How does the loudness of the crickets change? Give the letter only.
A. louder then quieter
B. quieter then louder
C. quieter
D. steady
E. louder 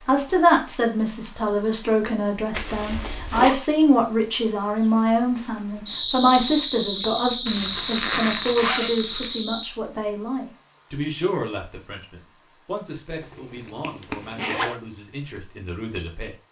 C.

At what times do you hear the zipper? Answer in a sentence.
The zipper can be heard from 2.5 to 3.5 s, from 7.5 to 9.4 s and from 13.2 to 14.8 s.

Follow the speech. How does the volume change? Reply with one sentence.
The loudness of the speech goes down.